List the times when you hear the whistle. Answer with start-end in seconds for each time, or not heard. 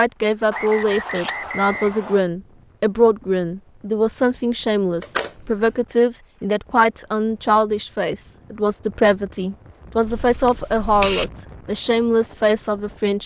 0.5-2.2.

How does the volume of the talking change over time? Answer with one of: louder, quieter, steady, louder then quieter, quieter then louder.
steady.